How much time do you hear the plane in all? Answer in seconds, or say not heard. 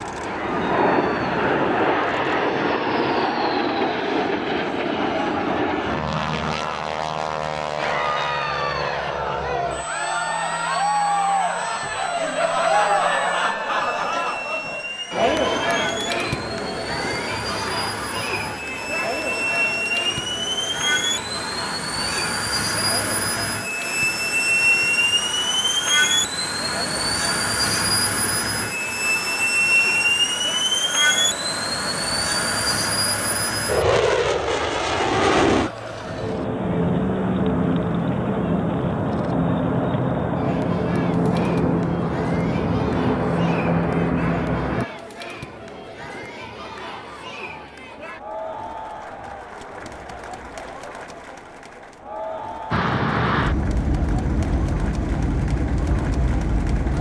49 s.